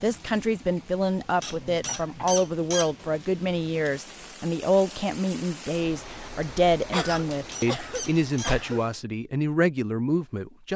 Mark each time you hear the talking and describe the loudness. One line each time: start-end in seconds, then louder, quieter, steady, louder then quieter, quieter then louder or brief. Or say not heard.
0.0-10.7 steady.